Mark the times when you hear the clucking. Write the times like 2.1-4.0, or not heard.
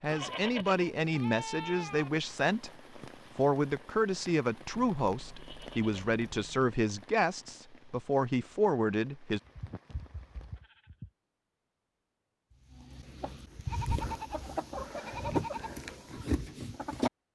12.7-17.1.